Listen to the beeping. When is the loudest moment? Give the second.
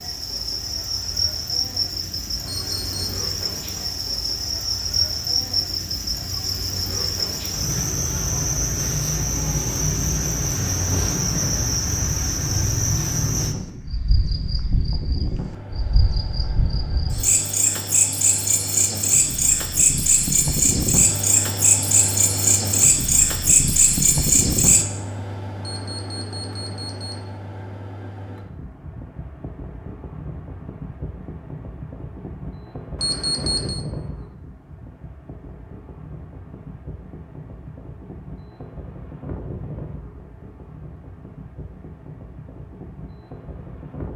33 s.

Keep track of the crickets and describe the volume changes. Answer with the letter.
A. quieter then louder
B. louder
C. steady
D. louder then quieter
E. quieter
B.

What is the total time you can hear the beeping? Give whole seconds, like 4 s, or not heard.
3 s.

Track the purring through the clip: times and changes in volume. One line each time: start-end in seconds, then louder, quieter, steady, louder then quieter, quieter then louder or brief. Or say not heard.
not heard.